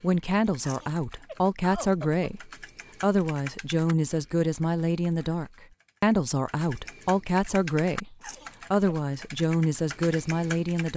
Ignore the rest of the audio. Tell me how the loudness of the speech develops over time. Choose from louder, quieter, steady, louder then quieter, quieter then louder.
steady.